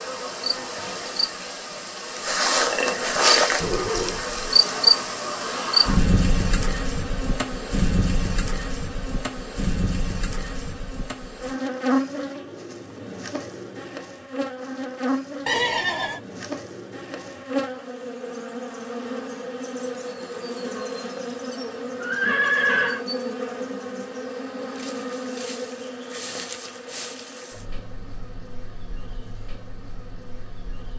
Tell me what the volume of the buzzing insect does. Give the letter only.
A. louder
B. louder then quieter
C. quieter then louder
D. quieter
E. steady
D.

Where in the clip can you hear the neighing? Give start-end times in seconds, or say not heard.
3.6-4.4, 15.4-16.2, 22.0-23.1.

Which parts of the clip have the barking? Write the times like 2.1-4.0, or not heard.
not heard.